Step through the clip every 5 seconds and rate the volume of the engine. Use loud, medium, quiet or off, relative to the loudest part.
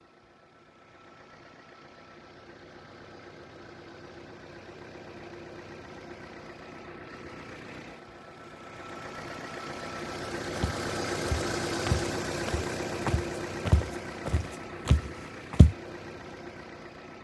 quiet, medium, loud, medium.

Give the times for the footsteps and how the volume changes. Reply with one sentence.
The footsteps can be heard from 10.6 to 15.8 s, getting louder.